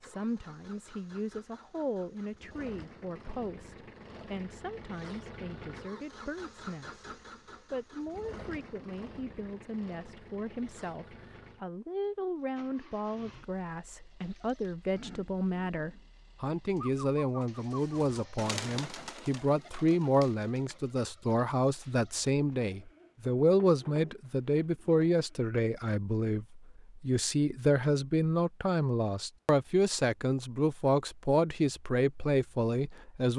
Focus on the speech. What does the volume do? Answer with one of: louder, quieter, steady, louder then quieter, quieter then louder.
louder.